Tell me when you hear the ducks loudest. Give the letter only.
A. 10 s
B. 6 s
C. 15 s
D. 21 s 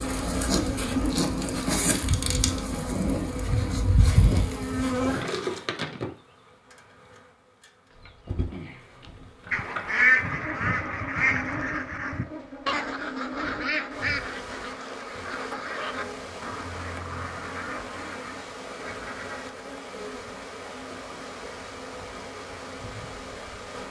A.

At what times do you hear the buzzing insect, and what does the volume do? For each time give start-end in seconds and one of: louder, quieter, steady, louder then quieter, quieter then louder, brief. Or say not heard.
0.0-23.8 quieter.